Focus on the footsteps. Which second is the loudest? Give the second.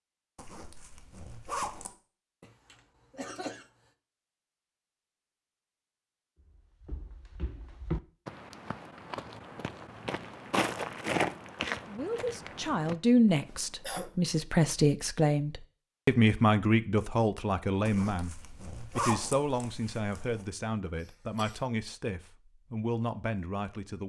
11 s.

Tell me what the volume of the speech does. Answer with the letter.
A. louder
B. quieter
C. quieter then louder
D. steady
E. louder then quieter
B.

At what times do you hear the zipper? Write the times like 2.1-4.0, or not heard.
0.3-1.9, 17.9-20.4.